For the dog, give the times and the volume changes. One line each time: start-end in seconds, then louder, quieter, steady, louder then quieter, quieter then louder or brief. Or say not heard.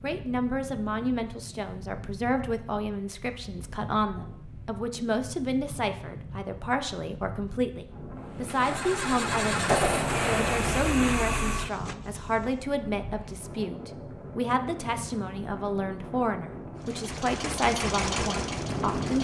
not heard.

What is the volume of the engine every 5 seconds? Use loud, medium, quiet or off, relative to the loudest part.
off, loud, loud, loud.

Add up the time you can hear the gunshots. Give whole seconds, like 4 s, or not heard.
2 s.